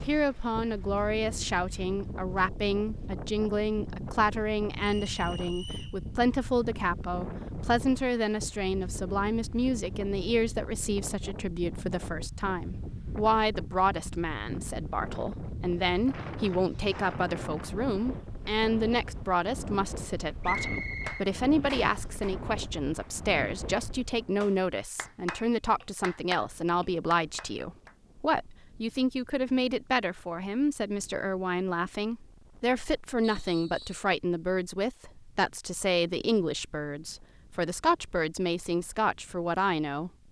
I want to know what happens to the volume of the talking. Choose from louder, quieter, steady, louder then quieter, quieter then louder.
steady.